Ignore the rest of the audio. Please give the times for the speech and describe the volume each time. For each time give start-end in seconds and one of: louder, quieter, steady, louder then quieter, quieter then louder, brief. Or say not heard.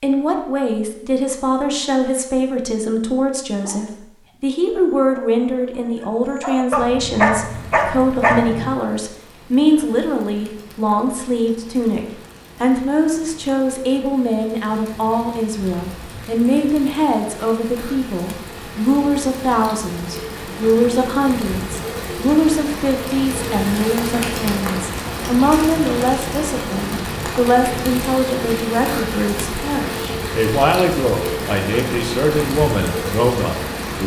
0.0-34.0 steady.